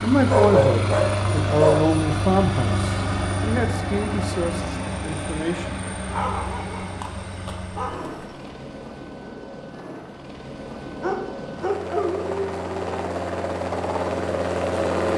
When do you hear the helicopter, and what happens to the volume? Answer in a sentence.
You can hear the helicopter from 0.0 to 15.1 s, getting quieter then louder.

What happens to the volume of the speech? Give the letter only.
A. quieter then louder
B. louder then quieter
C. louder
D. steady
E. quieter
E.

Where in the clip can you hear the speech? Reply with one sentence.
The speech can be heard from 0.0 to 5.8 s.